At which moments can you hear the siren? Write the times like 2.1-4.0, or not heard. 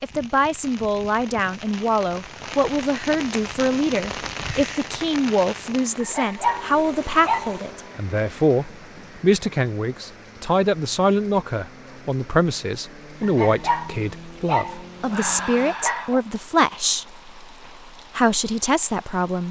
not heard.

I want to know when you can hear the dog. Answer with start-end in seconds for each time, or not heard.
6.0-7.6, 13.2-16.2.